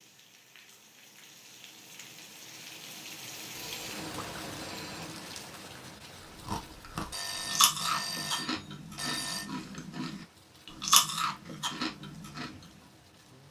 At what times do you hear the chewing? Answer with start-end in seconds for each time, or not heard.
6.2-12.5.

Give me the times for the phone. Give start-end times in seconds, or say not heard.
3.5-5.1, 7.1-9.5.